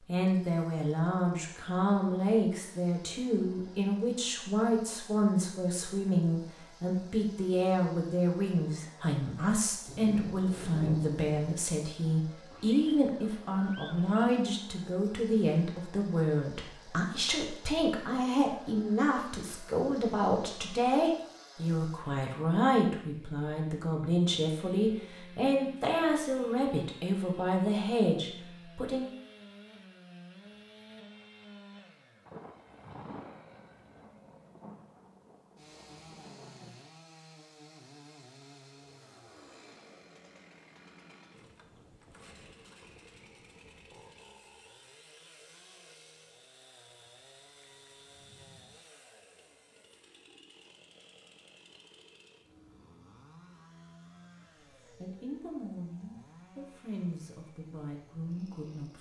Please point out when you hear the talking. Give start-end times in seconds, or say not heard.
0.1-29.1, 54.9-58.9.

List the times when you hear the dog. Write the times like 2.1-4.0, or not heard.
not heard.